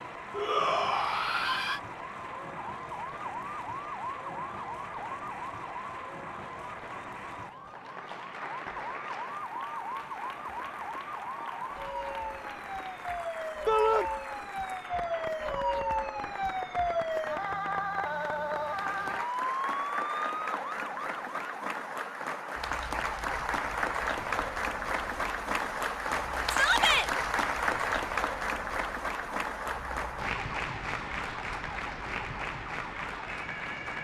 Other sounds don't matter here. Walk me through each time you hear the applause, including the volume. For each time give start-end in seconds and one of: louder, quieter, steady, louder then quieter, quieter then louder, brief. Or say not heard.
0.0-33.9 louder.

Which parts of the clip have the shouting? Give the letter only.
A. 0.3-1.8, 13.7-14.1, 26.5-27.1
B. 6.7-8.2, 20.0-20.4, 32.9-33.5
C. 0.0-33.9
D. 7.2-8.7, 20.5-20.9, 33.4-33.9
A.